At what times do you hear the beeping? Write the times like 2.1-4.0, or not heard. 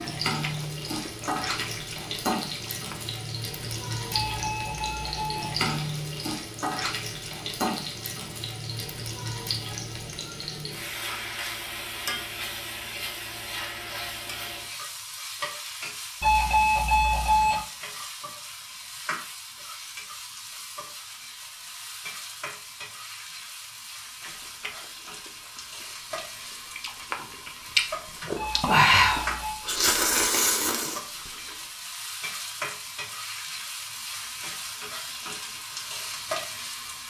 4.1-5.5, 16.2-17.6, 28.4-29.6.